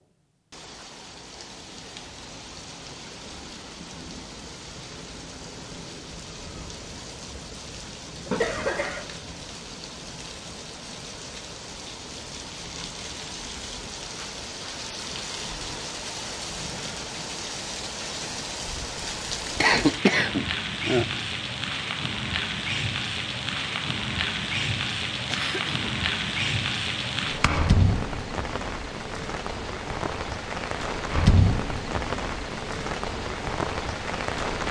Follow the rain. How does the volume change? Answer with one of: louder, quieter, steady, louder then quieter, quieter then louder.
louder.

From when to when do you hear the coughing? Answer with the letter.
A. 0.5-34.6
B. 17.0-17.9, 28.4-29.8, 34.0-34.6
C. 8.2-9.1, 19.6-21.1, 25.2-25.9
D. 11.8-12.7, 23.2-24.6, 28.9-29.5
C.